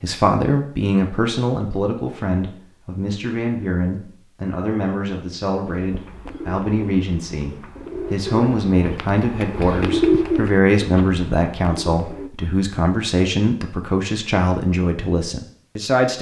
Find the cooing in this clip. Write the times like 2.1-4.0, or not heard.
5.7-12.3.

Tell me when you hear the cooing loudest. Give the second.
10 s.